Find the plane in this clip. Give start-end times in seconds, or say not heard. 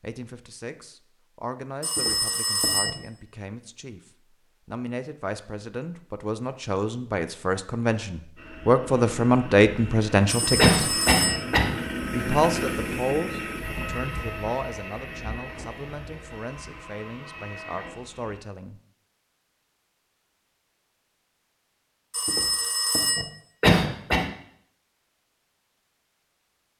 8.3-18.4.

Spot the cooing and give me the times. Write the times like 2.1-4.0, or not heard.
not heard.